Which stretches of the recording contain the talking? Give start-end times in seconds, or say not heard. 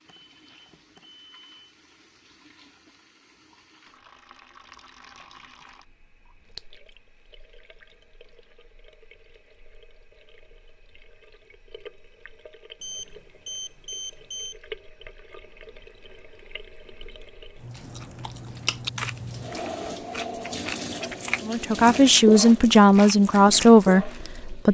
21.4-24.6.